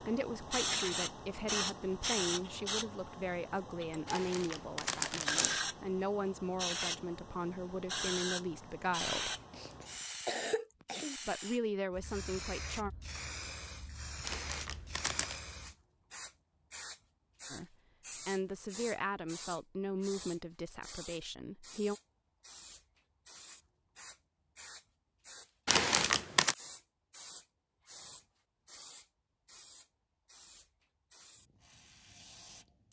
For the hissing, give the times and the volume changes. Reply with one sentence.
The hissing can be heard from 0.0 to 32.8 s, getting quieter.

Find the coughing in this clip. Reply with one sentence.
The coughing can be heard from 9.3 to 11.2 s.